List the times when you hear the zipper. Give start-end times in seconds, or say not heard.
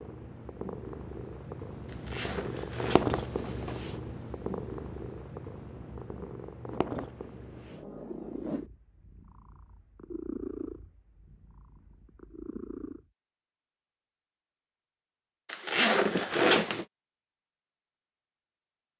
1.9-3.9, 6.7-8.7, 15.4-16.9.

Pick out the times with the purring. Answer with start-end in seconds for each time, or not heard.
0.0-13.1.